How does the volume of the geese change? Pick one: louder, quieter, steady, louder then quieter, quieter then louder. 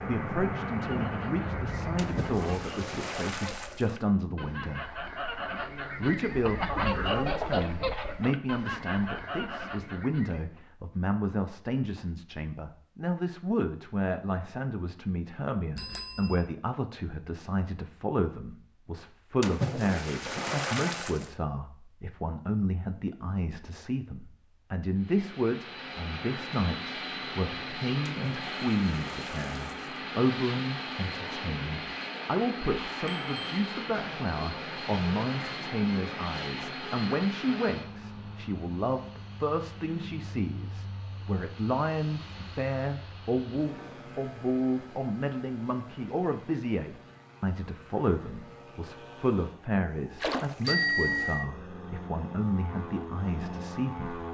louder then quieter.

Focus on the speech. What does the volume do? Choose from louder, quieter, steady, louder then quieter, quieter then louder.
steady.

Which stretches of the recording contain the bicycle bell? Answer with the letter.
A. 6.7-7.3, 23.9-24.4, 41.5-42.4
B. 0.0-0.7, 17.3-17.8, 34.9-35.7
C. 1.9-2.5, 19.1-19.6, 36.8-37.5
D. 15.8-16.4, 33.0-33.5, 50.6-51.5
D.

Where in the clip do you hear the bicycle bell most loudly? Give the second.
51 s.